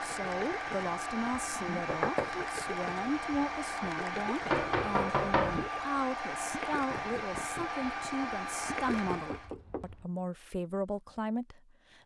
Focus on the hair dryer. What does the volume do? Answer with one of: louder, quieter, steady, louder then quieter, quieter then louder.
steady.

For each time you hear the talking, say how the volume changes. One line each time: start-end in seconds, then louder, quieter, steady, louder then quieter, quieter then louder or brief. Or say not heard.
0.0-12.0 steady.